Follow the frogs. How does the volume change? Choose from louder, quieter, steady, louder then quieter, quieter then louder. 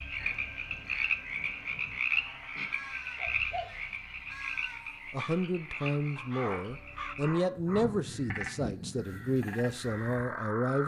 quieter.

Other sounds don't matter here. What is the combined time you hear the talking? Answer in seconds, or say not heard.
6 s.